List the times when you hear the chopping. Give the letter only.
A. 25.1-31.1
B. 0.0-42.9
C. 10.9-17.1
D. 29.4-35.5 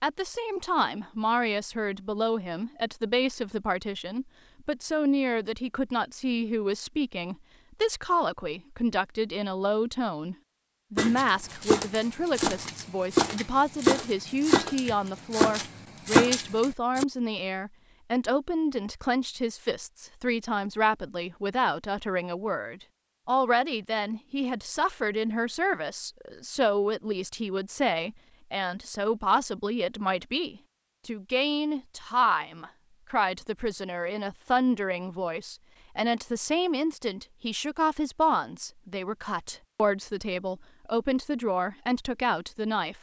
C.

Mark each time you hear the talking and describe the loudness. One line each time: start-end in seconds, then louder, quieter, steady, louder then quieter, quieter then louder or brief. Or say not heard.
0.0-42.9 steady.